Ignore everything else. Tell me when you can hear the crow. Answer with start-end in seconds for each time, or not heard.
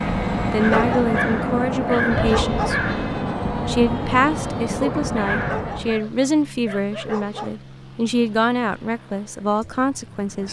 0.0-6.0.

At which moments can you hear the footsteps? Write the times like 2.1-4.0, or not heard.
not heard.